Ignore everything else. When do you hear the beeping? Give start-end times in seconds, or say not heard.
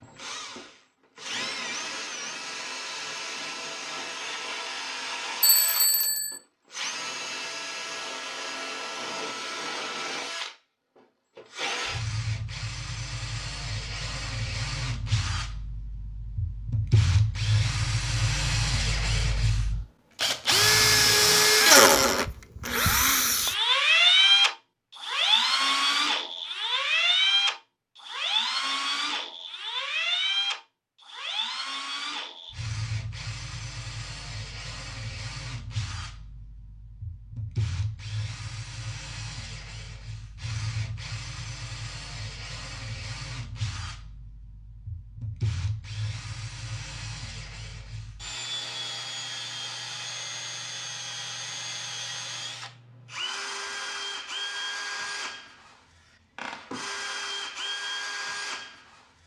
5.4-6.4.